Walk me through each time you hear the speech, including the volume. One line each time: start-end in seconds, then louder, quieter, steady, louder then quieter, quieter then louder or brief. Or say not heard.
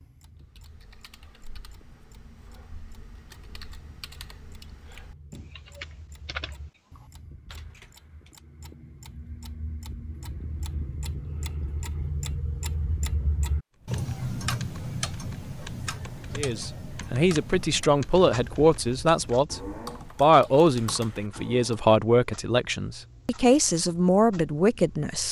16.4-25.2 steady.